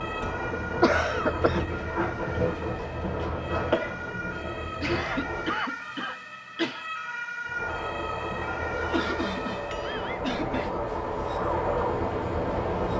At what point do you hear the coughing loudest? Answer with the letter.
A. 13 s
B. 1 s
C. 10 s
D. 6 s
B.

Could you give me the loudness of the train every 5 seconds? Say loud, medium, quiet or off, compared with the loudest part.
loud, medium, loud.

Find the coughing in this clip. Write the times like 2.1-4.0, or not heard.
0.5-1.6, 4.7-6.8, 8.8-10.8.